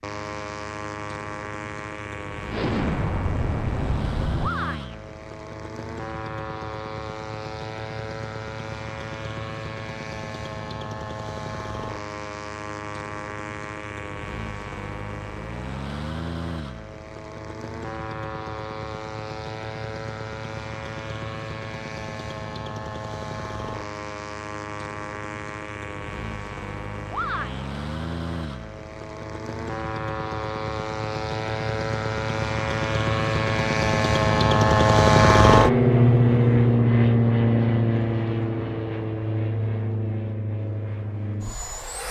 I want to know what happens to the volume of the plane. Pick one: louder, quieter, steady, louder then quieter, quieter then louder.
louder.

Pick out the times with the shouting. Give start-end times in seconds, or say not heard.
4.4-5.0, 27.1-27.7.